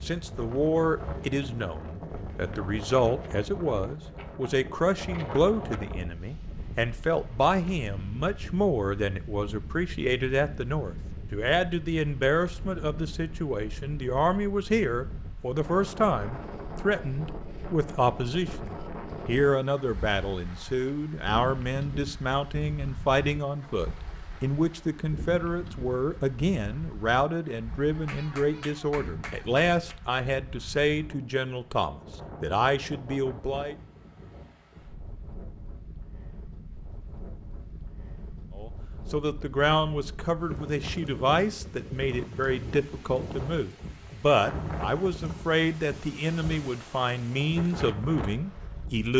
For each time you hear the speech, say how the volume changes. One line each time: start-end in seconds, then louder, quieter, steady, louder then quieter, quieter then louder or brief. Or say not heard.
0.0-33.8 steady
38.5-49.1 steady.